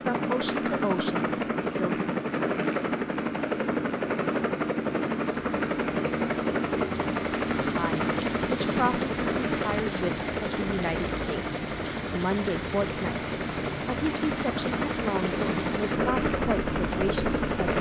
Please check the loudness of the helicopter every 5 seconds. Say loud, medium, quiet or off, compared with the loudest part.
loud, loud, medium, loud.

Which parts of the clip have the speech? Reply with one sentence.
You can hear the speech from 0.1 to 2.1 s and from 7.7 to 17.7 s.